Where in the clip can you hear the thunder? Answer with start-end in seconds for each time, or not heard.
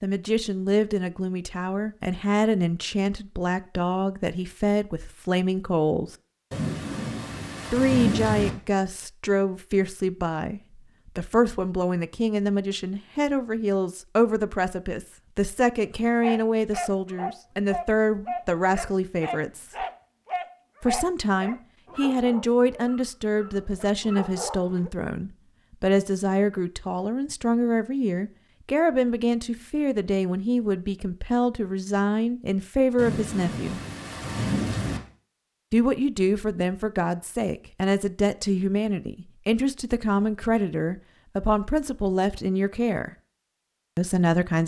6.5-8.5, 33.0-35.0.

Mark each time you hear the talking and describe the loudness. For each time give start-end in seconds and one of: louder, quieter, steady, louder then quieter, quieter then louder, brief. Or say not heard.
0.0-6.2 steady
7.7-19.9 steady
20.8-33.8 steady
35.7-43.1 steady
44.0-44.6 brief.